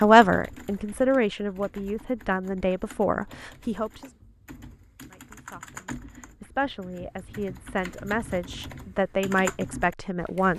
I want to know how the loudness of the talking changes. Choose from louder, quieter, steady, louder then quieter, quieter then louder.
quieter then louder.